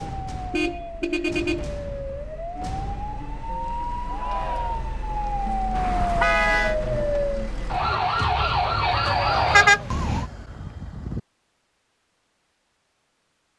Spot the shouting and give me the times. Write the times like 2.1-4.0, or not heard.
4.0-5.0, 9.1-9.9.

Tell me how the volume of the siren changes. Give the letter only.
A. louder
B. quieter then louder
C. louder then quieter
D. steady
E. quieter
A.